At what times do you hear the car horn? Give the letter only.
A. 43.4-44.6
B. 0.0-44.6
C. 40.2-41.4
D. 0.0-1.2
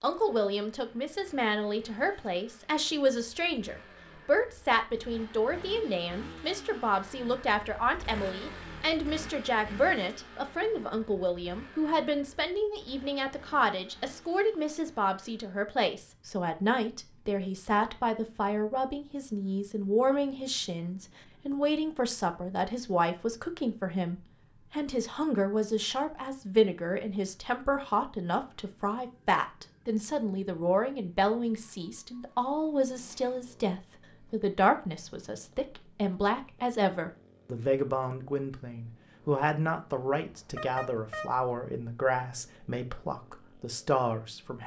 C.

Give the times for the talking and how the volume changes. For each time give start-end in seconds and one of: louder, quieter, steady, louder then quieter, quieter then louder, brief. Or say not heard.
0.0-44.6 steady.